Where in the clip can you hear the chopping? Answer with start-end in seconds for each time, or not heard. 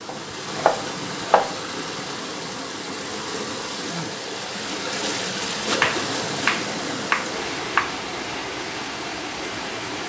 0.1-1.5, 5.8-8.0.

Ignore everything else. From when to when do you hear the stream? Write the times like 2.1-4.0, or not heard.
0.0-10.0.